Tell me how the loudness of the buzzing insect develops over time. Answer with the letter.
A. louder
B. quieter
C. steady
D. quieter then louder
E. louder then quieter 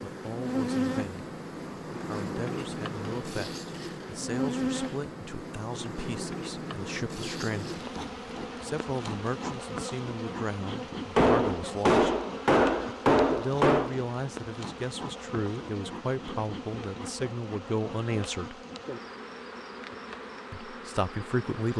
B.